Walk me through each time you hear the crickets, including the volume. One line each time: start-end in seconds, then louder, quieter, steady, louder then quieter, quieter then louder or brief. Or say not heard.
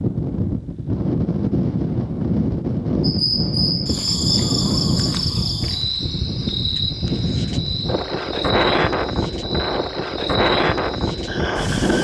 3.0-11.9 quieter.